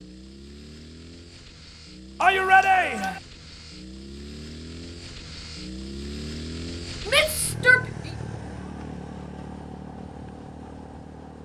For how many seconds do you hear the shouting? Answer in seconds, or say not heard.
2 s.